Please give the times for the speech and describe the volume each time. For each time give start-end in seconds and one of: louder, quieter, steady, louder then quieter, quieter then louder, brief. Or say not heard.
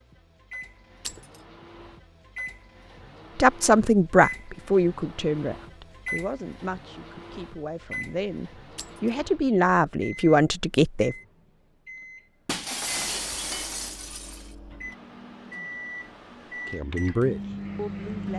3.4-11.2 quieter then louder
16.6-18.3 brief.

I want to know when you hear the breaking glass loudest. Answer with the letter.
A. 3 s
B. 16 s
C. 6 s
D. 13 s
D.